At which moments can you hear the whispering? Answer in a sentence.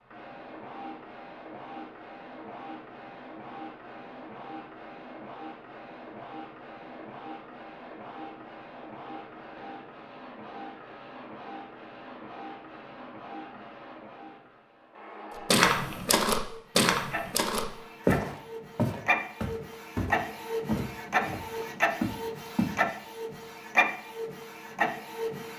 The whispering can't be heard in this clip.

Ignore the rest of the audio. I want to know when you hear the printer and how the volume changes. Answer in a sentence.
You can hear the printer from 0.0 to 25.5 s, getting louder.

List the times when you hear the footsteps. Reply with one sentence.
You can hear the footsteps from 15.5 to 22.8 s.